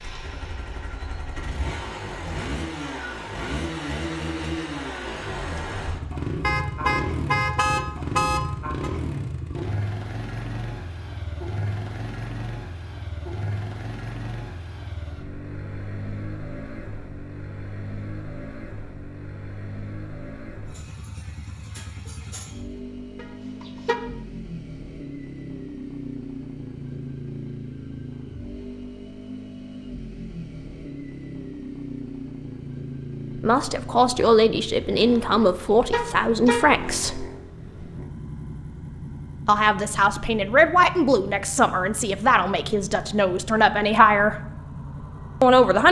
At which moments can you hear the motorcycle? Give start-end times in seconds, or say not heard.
0.0-45.8.